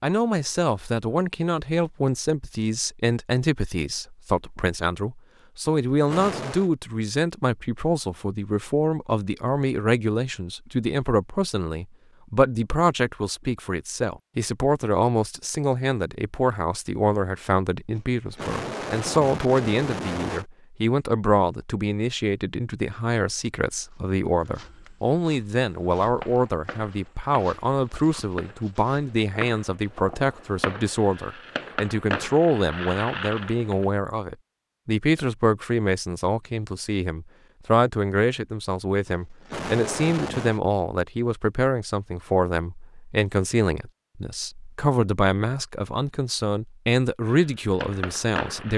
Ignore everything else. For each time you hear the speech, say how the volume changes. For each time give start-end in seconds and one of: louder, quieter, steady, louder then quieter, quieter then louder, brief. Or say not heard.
0.0-48.7 steady.